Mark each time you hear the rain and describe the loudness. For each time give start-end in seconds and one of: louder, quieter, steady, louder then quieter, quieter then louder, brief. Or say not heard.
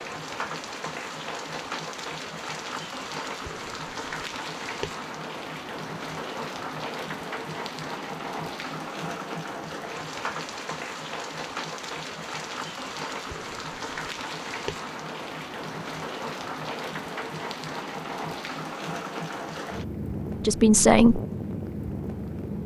0.0-22.6 steady.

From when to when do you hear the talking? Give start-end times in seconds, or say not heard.
20.4-21.2.